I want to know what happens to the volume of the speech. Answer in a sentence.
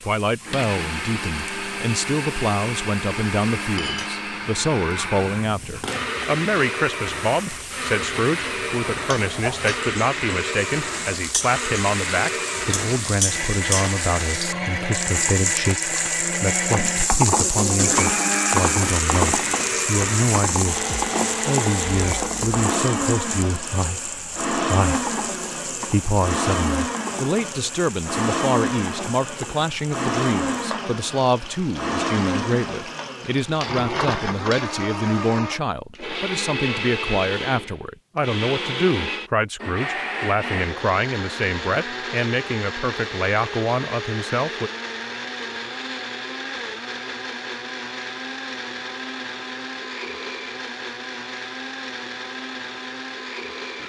The volume of the speech stays about the same.